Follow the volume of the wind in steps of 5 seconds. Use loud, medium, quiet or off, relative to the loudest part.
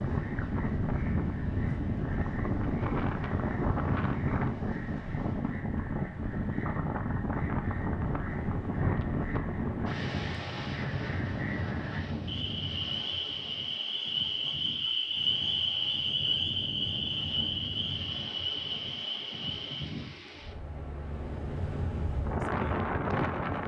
loud, loud, medium, medium, loud.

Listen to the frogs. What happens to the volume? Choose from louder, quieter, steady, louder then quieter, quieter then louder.
louder.